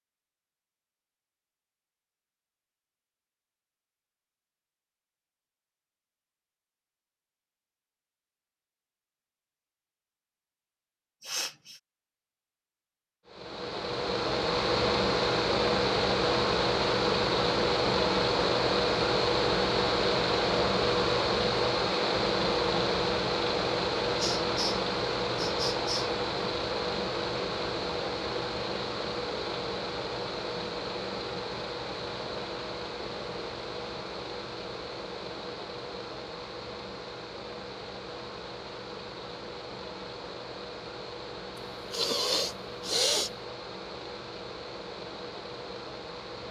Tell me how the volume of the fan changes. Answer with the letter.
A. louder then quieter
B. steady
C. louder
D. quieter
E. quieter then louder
D.